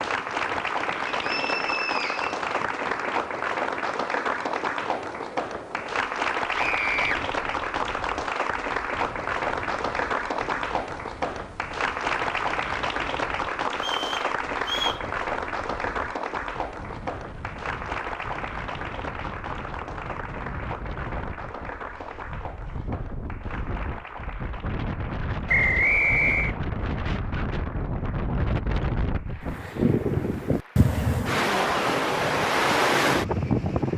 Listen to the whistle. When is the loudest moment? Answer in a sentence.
The volume of the whistle peaks at 26 seconds.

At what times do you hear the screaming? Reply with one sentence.
You can hear the screaming from 6.5 to 7.2 s.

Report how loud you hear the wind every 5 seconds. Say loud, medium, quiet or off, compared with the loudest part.
quiet, quiet, quiet, quiet, quiet, medium, loud.